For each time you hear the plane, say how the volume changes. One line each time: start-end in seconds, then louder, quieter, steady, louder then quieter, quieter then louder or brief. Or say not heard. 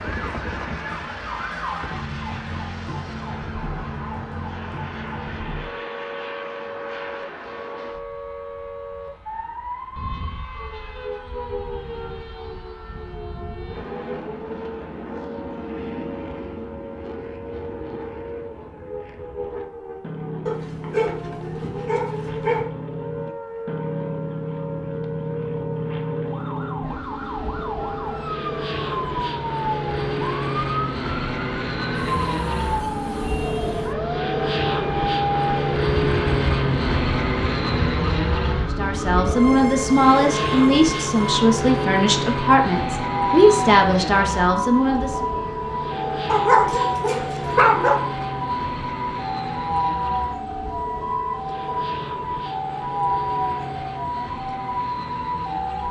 0.0-55.8 louder then quieter.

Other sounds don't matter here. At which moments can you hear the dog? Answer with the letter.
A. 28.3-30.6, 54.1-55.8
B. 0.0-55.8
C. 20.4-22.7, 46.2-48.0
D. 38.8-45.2
C.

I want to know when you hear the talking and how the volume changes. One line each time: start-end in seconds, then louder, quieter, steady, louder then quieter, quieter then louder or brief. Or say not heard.
38.8-45.2 steady.